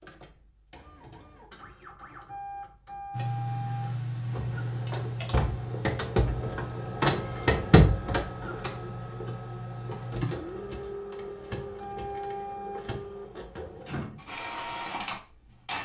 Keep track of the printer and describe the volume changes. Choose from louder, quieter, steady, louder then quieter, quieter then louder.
louder then quieter.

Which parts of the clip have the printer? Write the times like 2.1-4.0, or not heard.
0.0-15.8.